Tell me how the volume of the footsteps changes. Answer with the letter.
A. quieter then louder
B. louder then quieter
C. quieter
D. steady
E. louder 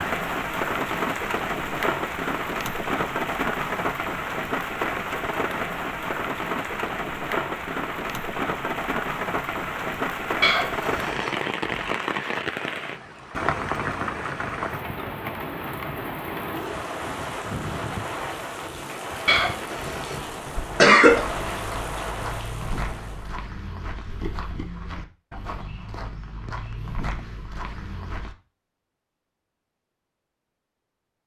D.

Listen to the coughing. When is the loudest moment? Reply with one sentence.
The loudest moment of the coughing is at 21 seconds.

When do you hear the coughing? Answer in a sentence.
You can hear the coughing from 10.4 to 11.8 s, from 19.2 to 20.1 s and from 20.8 to 21.2 s.